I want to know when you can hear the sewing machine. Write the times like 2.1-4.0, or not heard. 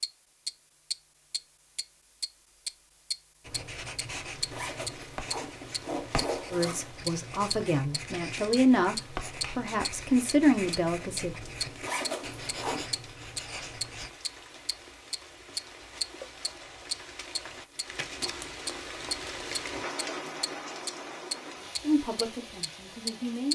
not heard.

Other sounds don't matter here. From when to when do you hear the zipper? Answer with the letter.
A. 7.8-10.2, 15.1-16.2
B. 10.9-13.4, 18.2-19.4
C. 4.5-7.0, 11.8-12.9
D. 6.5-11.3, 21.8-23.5
C.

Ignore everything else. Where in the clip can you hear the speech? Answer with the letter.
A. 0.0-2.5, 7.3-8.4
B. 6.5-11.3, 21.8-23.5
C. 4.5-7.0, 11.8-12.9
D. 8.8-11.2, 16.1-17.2
B.